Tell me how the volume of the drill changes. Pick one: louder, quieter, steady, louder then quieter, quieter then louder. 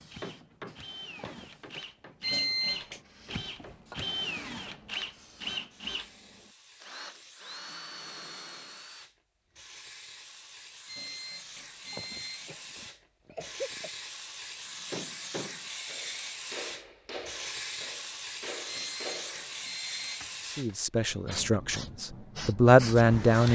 louder then quieter.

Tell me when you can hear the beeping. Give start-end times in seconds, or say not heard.
2.2-3.0, 10.8-12.8, 18.6-20.4.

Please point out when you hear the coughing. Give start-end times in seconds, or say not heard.
1.1-1.8, 11.9-13.9.